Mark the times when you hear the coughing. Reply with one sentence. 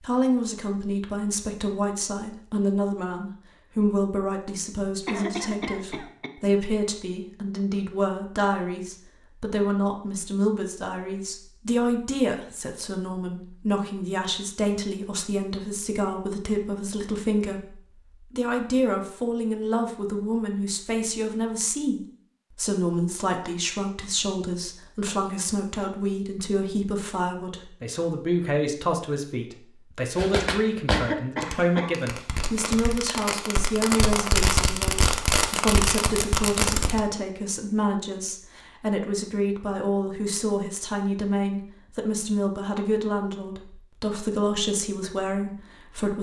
The coughing can be heard from 5.0 to 6.3 s and from 30.9 to 32.0 s.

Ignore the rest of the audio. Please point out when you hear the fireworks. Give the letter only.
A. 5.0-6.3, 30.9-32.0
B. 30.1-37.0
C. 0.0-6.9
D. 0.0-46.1
B.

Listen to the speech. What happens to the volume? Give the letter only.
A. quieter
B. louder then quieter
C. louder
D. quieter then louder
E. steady
E.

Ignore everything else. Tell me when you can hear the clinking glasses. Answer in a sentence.
You can't hear the clinking glasses here.